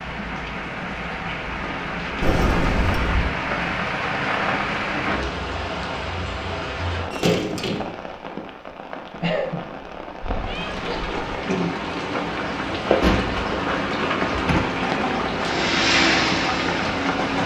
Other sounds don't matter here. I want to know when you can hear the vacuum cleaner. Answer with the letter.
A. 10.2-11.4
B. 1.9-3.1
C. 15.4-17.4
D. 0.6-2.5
C.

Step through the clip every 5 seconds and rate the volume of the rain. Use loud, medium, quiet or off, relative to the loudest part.
loud, medium, loud, loud.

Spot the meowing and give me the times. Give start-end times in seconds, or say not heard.
10.2-11.4.